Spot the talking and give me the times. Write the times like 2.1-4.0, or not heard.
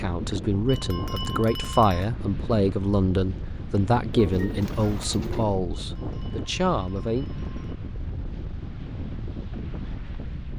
0.0-7.2.